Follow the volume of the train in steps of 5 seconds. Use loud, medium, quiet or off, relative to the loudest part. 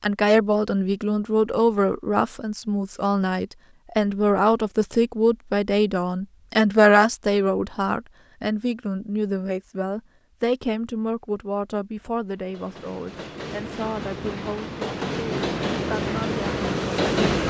off, off, medium, loud.